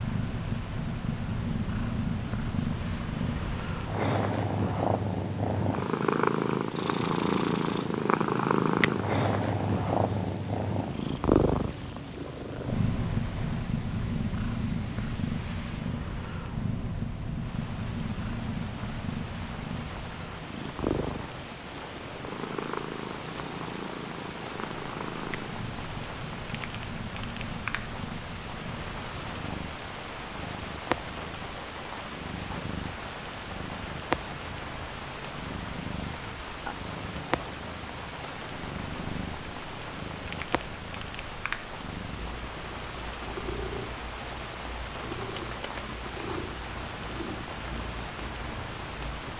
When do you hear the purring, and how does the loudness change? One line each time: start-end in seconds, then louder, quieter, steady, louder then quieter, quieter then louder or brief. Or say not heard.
0.0-49.3 quieter.